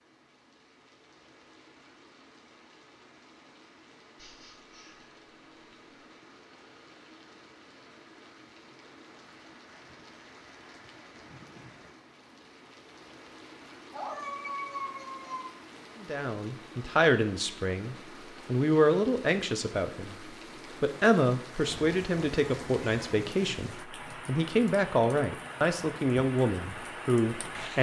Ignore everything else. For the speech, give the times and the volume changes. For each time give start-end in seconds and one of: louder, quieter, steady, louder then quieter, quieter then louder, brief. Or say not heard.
16.0-27.7 steady.